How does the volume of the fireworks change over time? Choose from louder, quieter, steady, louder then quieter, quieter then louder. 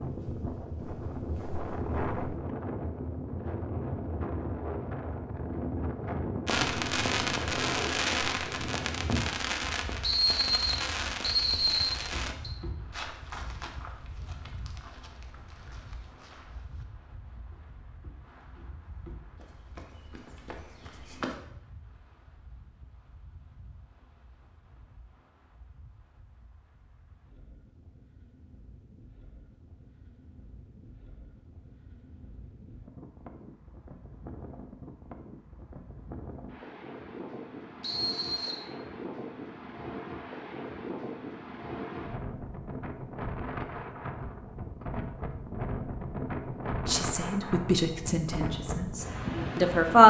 quieter.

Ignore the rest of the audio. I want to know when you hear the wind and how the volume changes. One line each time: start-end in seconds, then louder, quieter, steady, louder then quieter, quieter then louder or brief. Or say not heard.
0.0-50.0 quieter then louder.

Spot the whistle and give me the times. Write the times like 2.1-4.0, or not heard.
10.0-12.5, 37.8-38.6.